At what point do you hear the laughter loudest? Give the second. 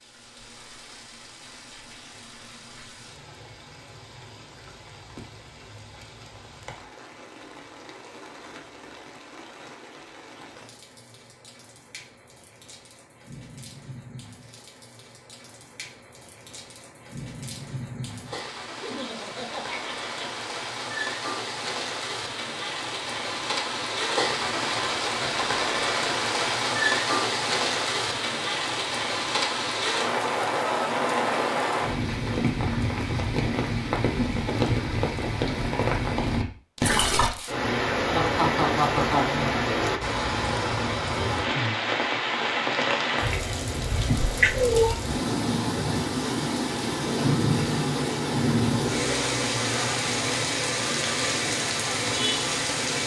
39 s.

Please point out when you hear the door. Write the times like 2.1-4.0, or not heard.
not heard.